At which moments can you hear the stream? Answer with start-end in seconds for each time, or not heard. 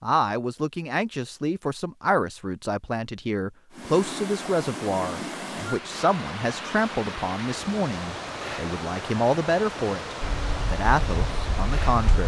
3.7-12.2.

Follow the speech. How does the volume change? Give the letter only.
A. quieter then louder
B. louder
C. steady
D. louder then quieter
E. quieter
C.